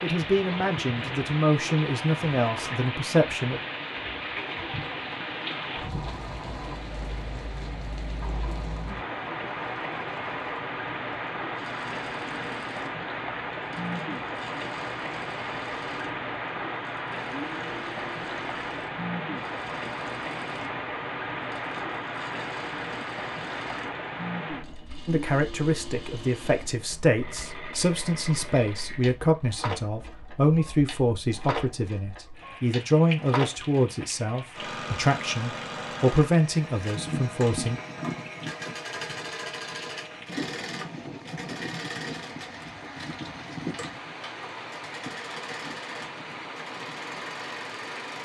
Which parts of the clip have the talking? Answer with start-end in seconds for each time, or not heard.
0.0-3.6, 25.1-37.8.